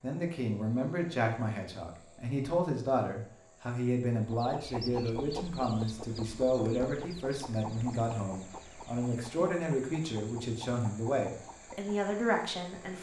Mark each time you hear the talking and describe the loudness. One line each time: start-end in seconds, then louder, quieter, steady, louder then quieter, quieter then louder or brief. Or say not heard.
0.0-12.9 steady.